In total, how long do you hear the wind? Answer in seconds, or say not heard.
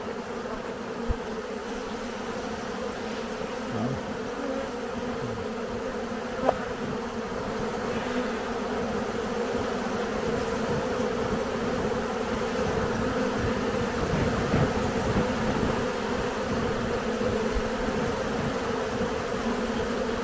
20 s.